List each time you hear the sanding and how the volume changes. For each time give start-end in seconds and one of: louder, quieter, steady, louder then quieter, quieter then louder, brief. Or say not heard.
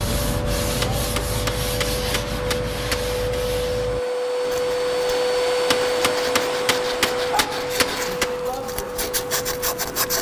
0.0-10.1 quieter then louder.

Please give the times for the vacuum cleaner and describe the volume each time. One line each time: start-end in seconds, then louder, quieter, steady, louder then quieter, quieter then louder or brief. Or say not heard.
0.0-10.1 louder then quieter.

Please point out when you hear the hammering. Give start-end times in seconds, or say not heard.
0.8-3.1, 5.7-8.3.